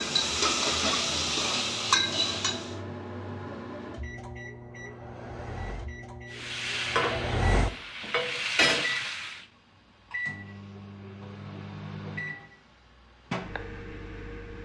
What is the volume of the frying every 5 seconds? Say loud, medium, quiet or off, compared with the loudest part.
loud, loud, off.